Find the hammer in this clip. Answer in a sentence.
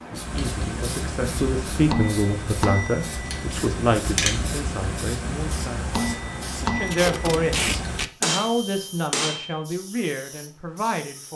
The hammer can be heard from 0.1 to 9.6 s.